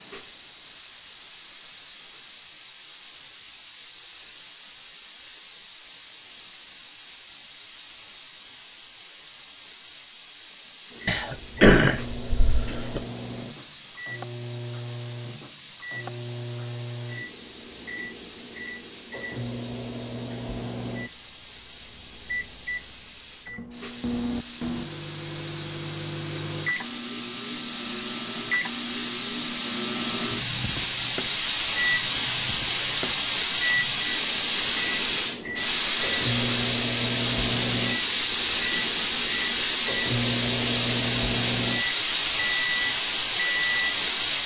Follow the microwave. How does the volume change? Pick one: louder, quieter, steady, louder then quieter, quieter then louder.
louder.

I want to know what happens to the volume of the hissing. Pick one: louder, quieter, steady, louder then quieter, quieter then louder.
louder.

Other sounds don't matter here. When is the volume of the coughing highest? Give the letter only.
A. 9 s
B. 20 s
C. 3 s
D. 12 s
D.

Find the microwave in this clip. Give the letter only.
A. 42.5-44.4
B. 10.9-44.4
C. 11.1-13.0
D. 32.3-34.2
B.